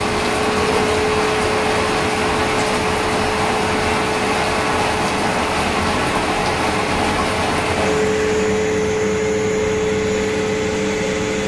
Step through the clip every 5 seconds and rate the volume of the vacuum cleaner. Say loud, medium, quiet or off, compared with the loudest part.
medium, loud, loud.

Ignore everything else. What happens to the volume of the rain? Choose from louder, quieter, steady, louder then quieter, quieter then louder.
steady.